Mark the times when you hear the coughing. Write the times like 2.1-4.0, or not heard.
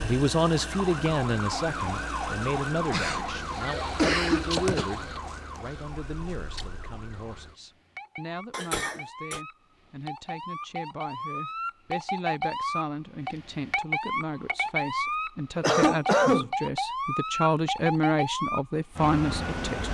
2.9-4.8, 8.5-9.4, 15.6-16.5.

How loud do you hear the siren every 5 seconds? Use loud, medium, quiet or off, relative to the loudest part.
loud, quiet, loud, loud.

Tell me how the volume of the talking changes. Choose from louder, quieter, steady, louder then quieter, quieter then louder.
quieter then louder.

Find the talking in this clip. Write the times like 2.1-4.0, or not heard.
0.0-19.8.